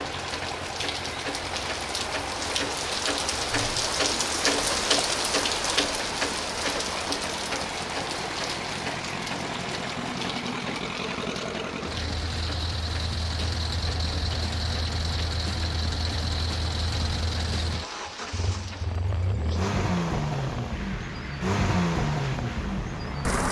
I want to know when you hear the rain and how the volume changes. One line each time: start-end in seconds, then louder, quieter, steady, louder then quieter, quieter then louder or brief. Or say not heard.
0.0-23.4 quieter.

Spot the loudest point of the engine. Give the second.
22 s.